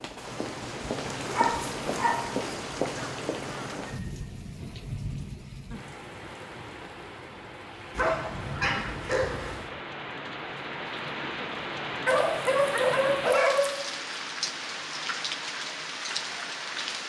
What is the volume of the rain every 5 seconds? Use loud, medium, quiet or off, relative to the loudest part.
loud, medium, loud, loud.